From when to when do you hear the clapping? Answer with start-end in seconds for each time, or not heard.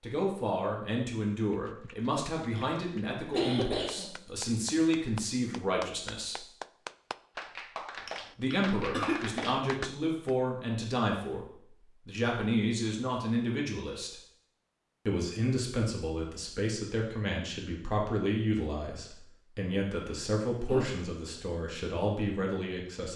1.5-10.3.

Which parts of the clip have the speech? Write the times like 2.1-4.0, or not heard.
0.0-6.5, 8.3-11.4, 12.1-14.2, 15.1-23.1.